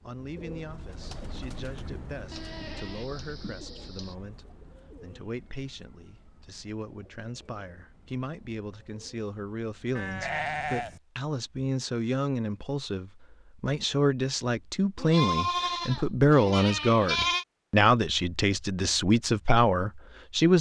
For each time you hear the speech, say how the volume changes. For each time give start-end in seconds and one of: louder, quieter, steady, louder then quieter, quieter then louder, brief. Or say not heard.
0.0-20.5 louder.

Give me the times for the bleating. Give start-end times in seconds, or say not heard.
2.3-4.2, 9.9-11.0, 14.9-17.4.